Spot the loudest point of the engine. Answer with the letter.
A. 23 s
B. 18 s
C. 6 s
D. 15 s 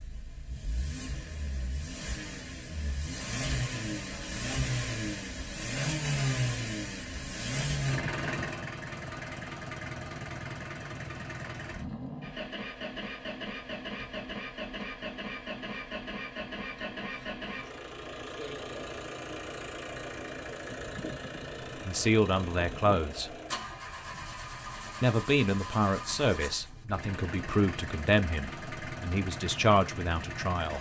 C.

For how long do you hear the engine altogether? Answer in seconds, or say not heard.
31 s.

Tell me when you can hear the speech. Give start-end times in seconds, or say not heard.
21.8-23.3, 25.0-30.7.